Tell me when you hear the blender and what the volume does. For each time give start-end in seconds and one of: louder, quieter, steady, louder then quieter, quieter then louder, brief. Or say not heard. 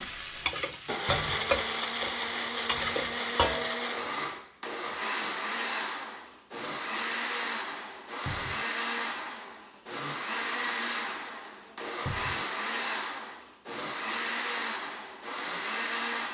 0.0-16.2 steady.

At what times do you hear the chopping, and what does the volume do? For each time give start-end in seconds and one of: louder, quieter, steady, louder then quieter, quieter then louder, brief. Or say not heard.
not heard.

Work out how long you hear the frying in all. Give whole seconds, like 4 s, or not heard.
4 s.